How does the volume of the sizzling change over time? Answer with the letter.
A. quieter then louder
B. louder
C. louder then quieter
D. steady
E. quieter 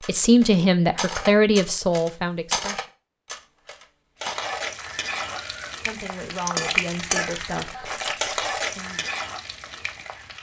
C.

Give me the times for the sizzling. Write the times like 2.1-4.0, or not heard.
4.2-10.3.